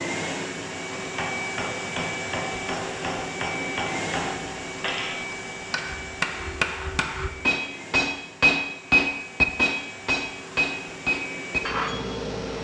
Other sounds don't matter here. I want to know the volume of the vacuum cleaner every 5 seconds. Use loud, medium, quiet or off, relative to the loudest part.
loud, medium, medium.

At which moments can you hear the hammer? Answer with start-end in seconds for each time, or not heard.
0.9-12.5.